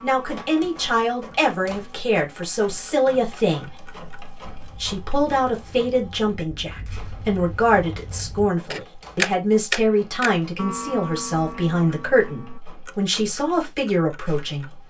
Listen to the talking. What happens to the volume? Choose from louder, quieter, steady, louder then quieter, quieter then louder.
steady.